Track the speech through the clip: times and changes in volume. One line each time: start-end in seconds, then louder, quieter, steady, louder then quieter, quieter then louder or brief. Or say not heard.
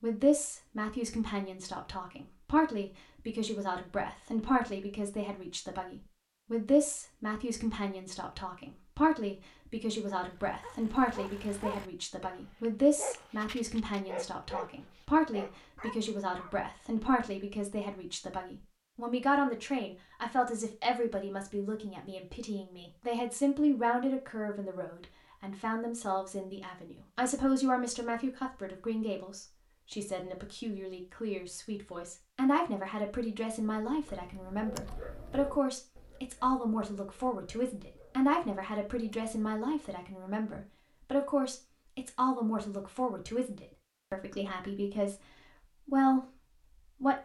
0.0-47.2 steady.